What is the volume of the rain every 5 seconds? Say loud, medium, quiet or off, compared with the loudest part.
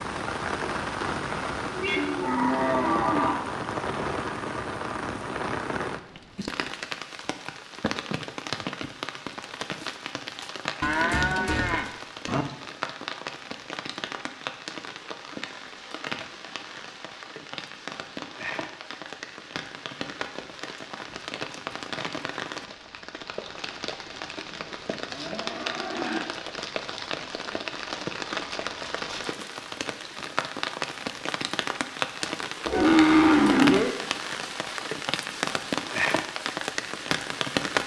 loud, medium, medium, medium, medium, medium, loud, loud.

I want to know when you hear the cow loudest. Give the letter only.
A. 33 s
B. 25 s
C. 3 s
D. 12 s
A.